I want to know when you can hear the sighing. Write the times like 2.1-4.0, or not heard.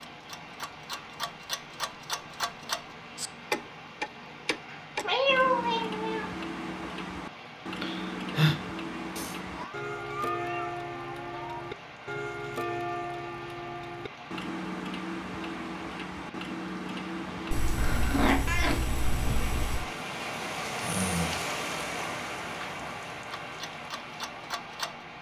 7.8-8.6, 20.8-21.4.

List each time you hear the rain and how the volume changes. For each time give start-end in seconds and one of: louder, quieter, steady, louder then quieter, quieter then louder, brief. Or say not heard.
0.0-25.1 louder.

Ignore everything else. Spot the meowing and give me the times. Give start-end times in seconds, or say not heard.
5.0-6.2, 9.2-11.7, 17.5-19.9.